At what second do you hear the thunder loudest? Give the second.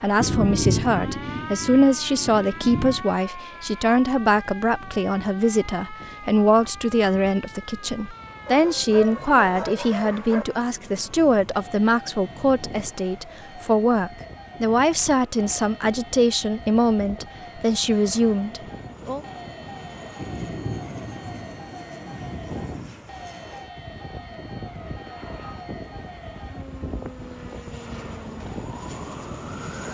1 s.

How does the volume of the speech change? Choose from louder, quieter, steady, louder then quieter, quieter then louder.
steady.